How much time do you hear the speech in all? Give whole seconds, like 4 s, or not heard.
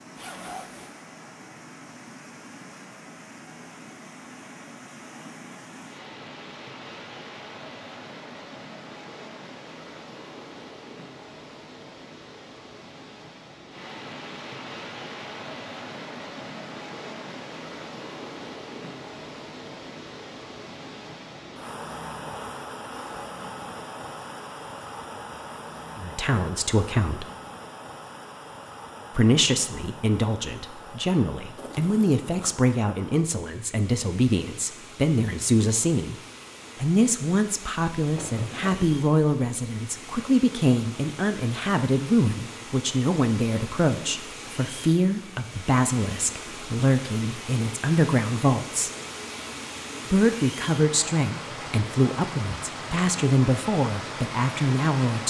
26 s.